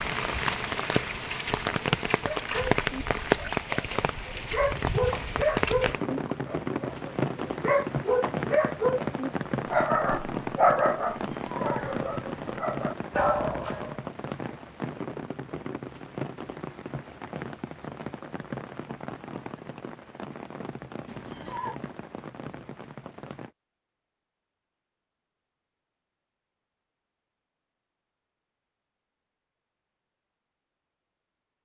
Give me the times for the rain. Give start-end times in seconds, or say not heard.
0.0-23.5.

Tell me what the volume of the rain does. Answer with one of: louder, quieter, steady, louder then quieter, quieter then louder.
quieter.